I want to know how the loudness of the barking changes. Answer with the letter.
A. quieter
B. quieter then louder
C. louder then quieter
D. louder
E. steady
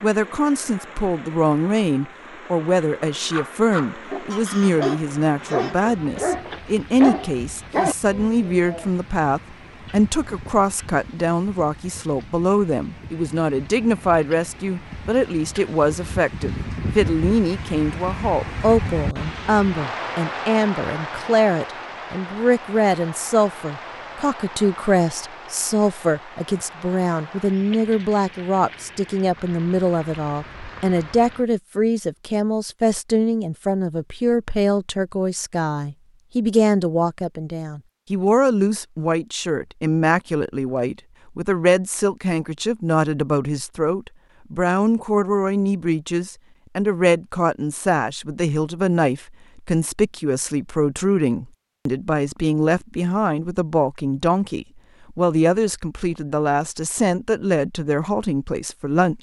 D.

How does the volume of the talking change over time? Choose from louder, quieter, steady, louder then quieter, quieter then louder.
steady.